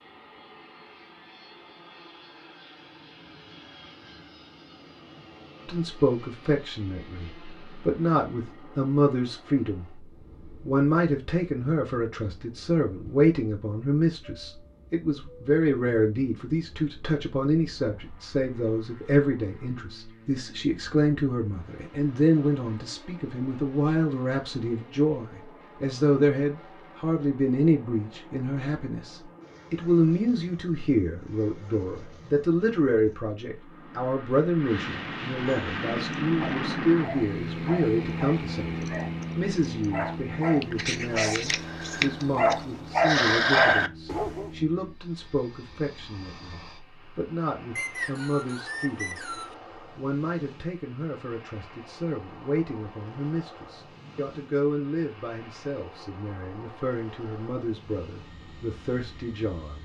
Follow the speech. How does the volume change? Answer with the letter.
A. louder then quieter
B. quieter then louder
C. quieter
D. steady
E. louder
C.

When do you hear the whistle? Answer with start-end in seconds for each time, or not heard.
47.8-49.5.